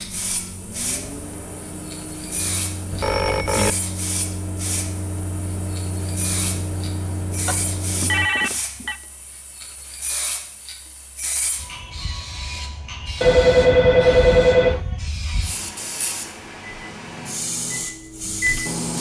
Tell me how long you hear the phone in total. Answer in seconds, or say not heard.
4 s.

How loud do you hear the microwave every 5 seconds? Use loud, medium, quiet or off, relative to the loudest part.
medium, loud, off, loud.